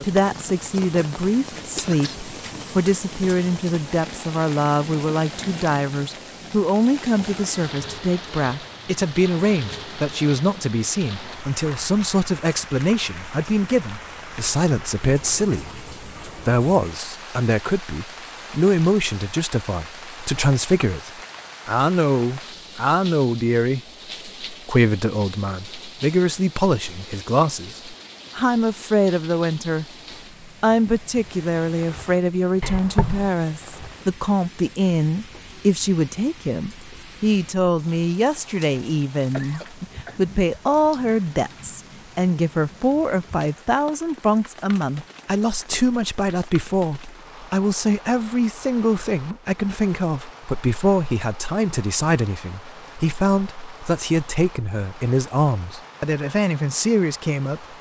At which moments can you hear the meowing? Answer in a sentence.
You can't hear the meowing here.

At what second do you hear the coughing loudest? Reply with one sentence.
The loudest moment of the coughing is at 33 seconds.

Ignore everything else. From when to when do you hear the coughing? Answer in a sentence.
You can hear the coughing from 1.8 to 2.7 s, from 32.6 to 33.3 s and from 39.3 to 40.2 s.